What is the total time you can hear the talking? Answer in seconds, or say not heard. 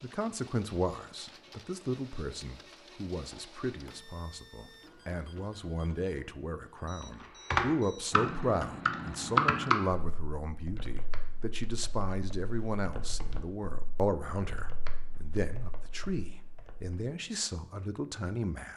19 s.